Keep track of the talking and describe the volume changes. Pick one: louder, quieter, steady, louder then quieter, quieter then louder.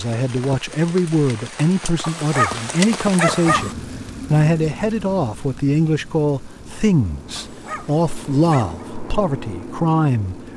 steady.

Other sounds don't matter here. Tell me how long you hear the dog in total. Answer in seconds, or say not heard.
3 s.